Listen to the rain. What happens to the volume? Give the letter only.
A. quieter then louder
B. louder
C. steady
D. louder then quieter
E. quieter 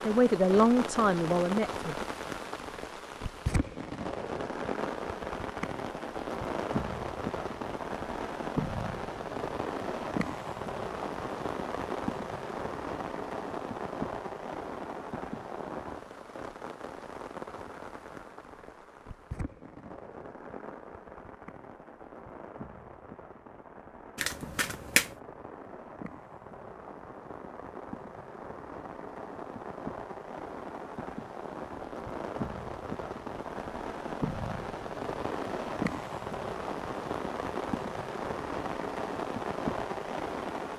A.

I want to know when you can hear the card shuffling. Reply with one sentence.
You can hear the card shuffling from 24.1 to 25.1 s.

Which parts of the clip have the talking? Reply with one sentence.
You can hear the talking from 0.0 to 2.0 s.